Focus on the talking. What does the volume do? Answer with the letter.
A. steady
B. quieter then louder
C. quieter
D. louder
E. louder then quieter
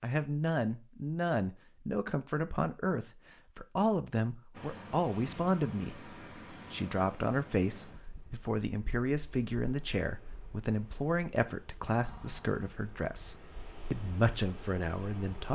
A.